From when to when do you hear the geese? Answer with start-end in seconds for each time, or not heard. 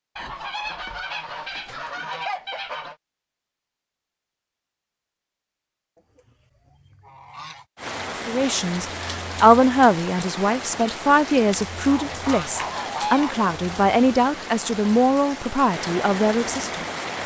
0.1-3.0, 6.0-7.7, 11.8-13.4.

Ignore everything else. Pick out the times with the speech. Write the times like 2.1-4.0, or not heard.
8.2-16.9.